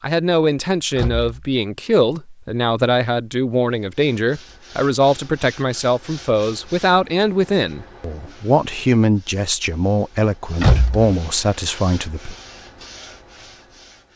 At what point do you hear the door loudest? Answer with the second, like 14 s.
11 s.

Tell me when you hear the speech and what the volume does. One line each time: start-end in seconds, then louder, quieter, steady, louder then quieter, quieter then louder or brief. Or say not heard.
0.0-12.3 steady.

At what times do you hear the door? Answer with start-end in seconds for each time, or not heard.
0.9-1.5, 10.6-11.2.